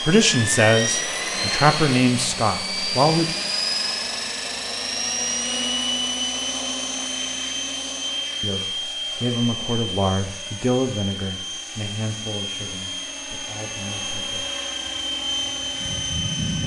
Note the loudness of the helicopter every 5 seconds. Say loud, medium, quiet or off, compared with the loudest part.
loud, loud, medium, loud.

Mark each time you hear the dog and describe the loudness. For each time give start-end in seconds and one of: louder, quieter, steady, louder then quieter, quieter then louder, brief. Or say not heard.
not heard.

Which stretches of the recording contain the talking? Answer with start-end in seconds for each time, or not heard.
0.0-3.4, 8.4-14.5.